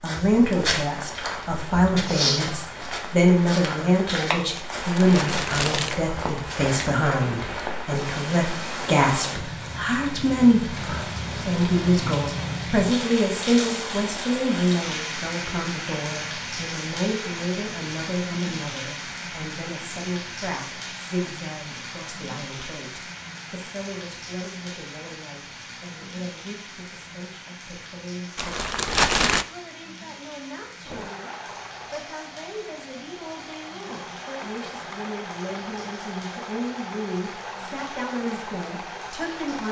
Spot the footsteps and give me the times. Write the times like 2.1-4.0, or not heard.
0.1-7.2.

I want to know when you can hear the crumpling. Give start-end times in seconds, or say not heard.
4.5-6.0, 28.4-29.4.